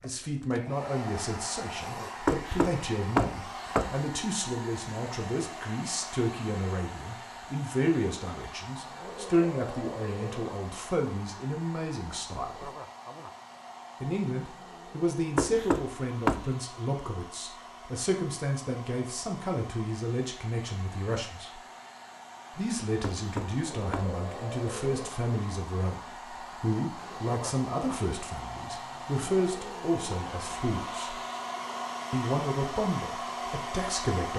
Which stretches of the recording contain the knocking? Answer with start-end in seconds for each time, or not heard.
2.2-4.0, 15.3-16.4, 23.0-24.1.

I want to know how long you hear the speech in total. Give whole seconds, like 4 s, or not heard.
31 s.